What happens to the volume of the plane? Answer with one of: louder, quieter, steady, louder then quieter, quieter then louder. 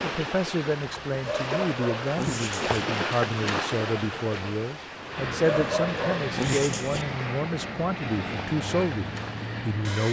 steady.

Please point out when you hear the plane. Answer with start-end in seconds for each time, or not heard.
5.1-10.0.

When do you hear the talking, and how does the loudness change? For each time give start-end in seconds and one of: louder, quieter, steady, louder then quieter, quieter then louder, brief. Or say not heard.
0.0-10.0 steady.